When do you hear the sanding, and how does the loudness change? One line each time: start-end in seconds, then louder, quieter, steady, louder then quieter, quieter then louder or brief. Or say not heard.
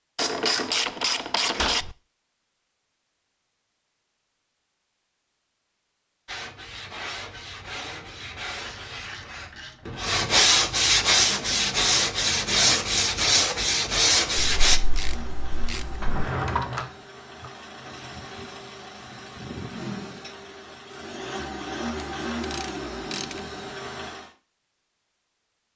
6.2-14.8 louder.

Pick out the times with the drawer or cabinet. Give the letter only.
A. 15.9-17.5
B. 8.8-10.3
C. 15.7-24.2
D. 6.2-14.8
A.